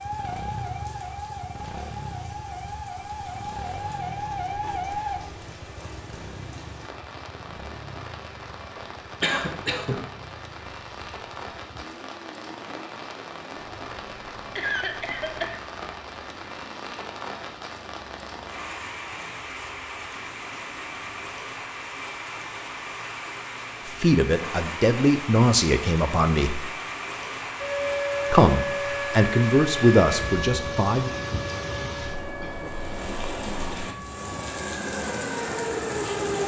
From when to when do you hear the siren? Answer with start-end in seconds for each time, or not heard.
0.0-5.2, 27.6-36.4.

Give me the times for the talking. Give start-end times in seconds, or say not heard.
23.9-26.7, 28.3-31.1.